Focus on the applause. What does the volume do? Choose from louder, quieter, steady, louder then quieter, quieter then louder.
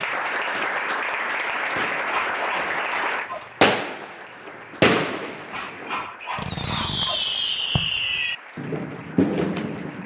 quieter.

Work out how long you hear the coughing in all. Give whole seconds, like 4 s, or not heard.
3 s.